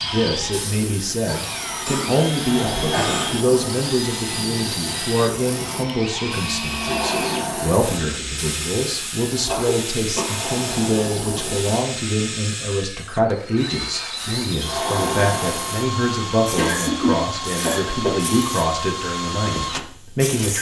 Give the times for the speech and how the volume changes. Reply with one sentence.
You can hear the speech from 0.0 to 20.5 s, at a steady volume.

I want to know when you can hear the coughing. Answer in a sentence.
You can hear the coughing from 1.9 to 3.4 s, from 9.4 to 10.3 s and from 16.6 to 18.3 s.